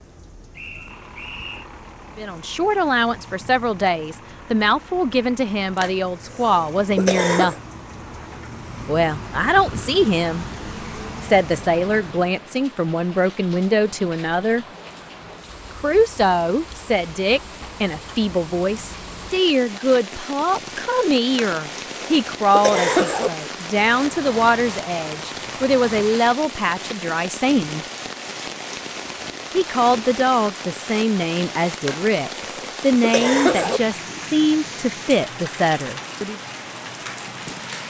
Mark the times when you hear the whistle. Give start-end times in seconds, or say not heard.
0.6-1.7.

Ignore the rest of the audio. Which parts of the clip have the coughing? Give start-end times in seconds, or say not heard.
5.8-7.6, 21.4-23.3, 31.8-33.8.